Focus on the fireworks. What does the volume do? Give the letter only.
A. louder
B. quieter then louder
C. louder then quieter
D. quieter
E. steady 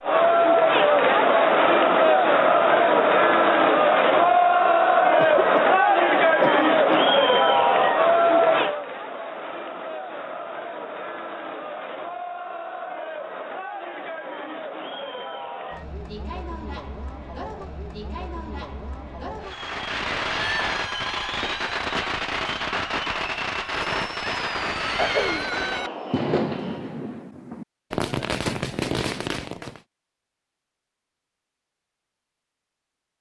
E.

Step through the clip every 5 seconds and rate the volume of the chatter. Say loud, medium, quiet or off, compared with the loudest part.
loud, loud, quiet, quiet, quiet, quiet, off.